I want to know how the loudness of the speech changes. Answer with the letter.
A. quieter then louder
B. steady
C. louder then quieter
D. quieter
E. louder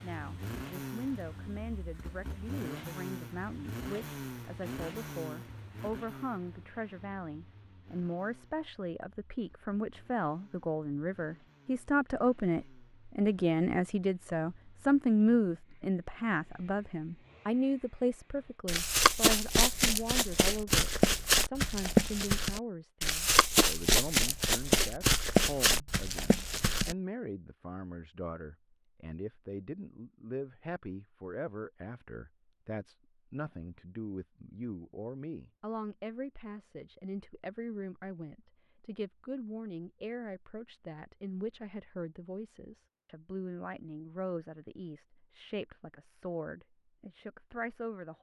C.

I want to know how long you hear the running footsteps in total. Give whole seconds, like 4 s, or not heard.
8 s.